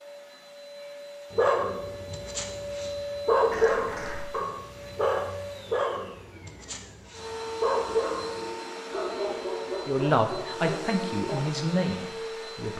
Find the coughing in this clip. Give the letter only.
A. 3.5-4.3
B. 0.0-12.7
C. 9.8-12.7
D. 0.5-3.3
A.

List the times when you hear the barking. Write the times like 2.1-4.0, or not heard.
1.3-11.5.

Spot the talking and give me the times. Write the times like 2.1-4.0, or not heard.
9.8-12.7.